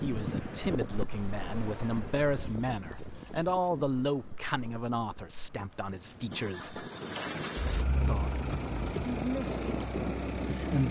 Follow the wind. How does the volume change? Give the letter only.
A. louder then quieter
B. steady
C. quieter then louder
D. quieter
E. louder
C.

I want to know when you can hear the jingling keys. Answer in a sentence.
You can hear the jingling keys from 2.2 to 3.6 s and from 7.6 to 9.2 s.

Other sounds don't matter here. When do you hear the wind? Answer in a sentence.
You can hear the wind from 0.0 to 10.8 s.